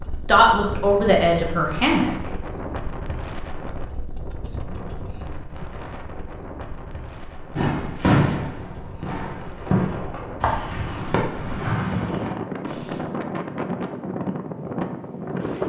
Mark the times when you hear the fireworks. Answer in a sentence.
You can hear the fireworks from 7.5 to 13.0 s.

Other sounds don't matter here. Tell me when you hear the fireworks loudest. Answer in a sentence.
The loudest moment of the fireworks is at 8 seconds.